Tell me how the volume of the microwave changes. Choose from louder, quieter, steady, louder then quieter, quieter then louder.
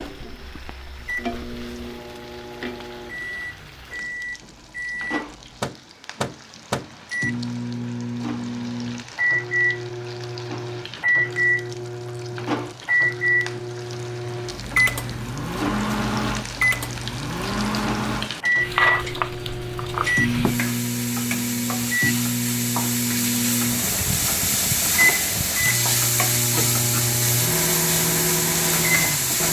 louder.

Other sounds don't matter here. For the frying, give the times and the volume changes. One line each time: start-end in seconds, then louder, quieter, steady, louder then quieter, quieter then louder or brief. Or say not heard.
0.0-29.4 louder.